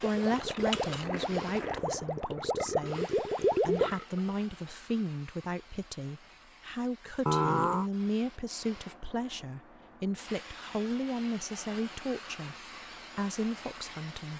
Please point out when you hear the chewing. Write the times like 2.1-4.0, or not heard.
0.3-2.0.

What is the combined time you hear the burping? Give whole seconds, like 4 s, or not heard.
3 s.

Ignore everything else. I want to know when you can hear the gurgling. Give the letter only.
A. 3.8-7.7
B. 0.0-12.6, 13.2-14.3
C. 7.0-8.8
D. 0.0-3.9
D.